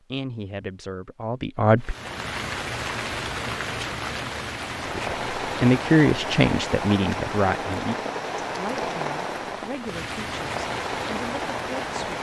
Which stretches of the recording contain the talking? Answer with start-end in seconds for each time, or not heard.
0.1-1.9, 4.8-12.1.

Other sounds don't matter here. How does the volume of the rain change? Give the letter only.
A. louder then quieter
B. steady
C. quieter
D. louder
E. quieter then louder
B.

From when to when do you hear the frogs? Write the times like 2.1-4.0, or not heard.
not heard.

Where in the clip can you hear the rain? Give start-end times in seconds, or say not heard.
1.8-12.1.